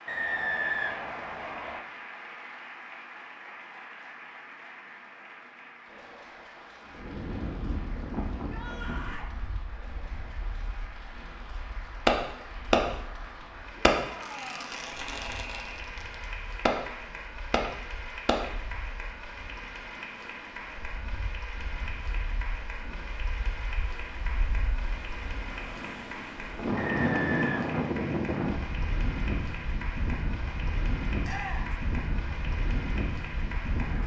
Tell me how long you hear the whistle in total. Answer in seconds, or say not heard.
4 s.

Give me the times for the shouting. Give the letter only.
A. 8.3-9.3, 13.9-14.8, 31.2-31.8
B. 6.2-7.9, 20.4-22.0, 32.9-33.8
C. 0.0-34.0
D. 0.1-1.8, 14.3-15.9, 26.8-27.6
A.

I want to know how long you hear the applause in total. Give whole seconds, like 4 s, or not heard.
34 s.